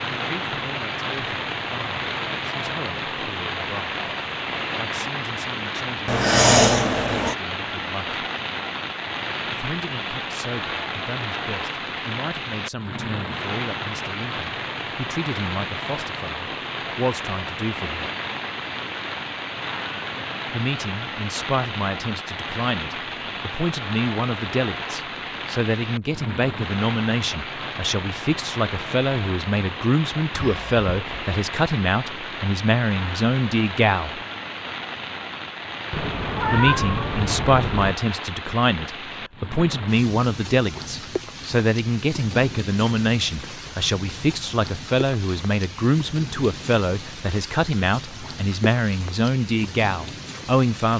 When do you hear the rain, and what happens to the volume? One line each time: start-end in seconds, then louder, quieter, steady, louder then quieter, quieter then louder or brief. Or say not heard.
0.0-50.9 quieter.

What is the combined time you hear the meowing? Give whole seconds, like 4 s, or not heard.
4 s.